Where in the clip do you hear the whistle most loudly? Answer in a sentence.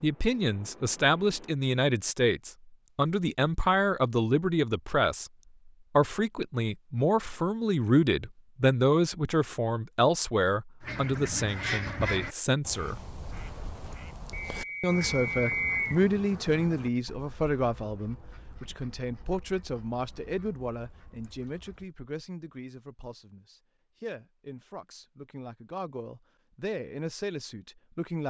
The loudest moment of the whistle is at 16 seconds.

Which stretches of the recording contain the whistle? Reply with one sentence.
You can hear the whistle from 14.3 to 16.0 s.